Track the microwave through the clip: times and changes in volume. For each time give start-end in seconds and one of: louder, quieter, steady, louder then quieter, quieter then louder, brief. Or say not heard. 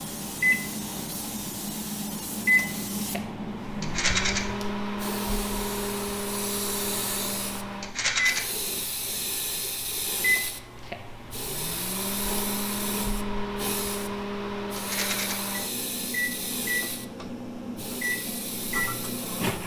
0.0-19.6 steady.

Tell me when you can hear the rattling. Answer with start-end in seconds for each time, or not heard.
3.8-4.4, 7.8-8.4, 14.8-15.3.